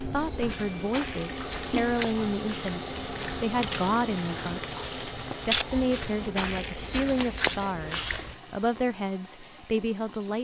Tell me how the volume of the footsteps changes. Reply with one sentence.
The loudness of the footsteps goes up.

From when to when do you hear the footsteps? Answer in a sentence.
You can hear the footsteps from 0.0 to 8.3 s.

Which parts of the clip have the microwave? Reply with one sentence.
You can't hear the microwave here.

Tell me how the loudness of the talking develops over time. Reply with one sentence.
The volume of the talking stays about the same.